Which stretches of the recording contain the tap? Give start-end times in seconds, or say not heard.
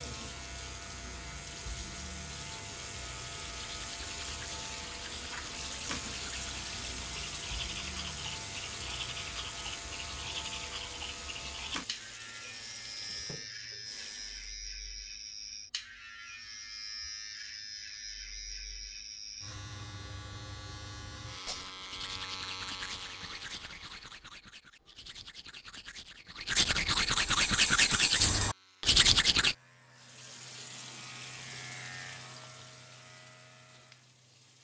0.0-14.6, 29.9-34.6.